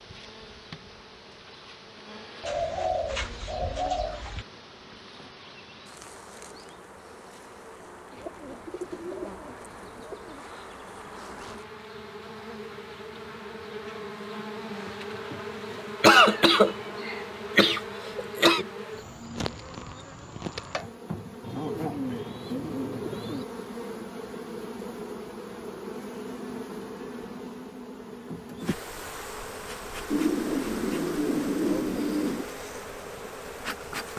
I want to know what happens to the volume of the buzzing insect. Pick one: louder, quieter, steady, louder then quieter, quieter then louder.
louder.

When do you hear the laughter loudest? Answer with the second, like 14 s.
16 s.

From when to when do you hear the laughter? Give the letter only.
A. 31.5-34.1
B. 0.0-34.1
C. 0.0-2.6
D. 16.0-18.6
D.